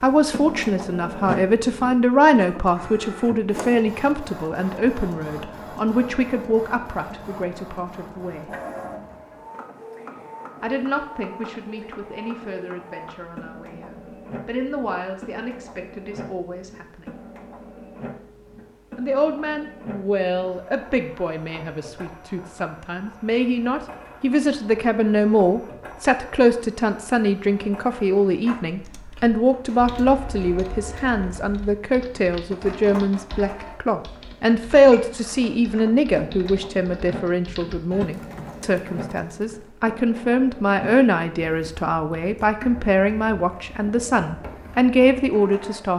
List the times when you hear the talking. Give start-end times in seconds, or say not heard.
0.0-8.5, 10.6-17.1, 18.9-45.9.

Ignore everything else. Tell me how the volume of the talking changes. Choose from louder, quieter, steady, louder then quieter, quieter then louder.
quieter then louder.